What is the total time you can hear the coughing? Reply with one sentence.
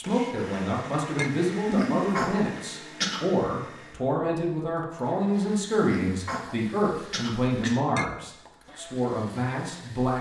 The coughing can be heard for 4 seconds in total.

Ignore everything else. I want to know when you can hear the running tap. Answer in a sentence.
The running tap can't be heard in this clip.